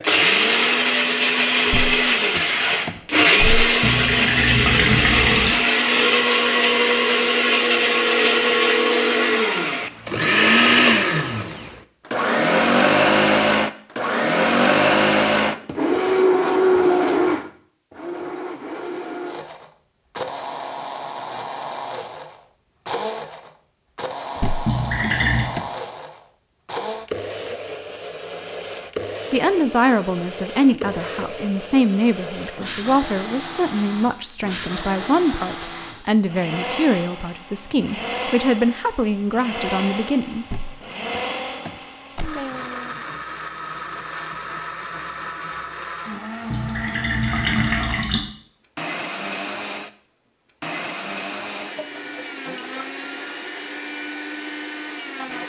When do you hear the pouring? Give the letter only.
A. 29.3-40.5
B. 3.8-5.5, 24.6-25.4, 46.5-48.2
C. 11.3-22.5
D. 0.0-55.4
B.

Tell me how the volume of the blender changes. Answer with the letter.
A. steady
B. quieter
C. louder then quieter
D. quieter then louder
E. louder
B.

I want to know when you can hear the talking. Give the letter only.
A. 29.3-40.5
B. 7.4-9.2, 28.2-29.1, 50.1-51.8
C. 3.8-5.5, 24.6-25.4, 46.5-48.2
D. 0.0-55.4
A.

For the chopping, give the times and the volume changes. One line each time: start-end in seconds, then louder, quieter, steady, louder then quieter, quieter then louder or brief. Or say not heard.
not heard.